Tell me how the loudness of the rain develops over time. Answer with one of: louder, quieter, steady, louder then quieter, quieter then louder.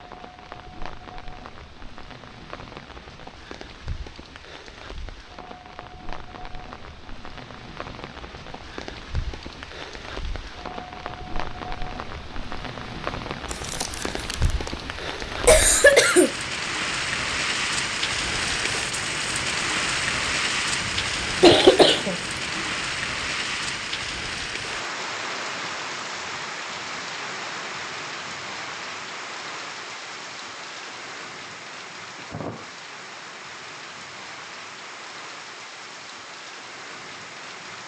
louder then quieter.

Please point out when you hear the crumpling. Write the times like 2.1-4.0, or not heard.
13.4-14.8.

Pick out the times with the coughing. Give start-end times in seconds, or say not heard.
15.4-16.3, 20.8-22.6.